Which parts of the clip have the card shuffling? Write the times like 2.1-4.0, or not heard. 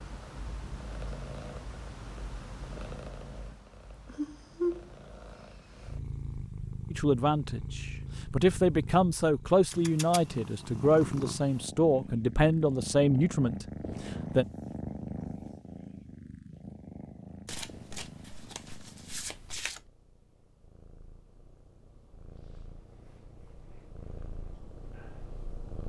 17.4-19.8.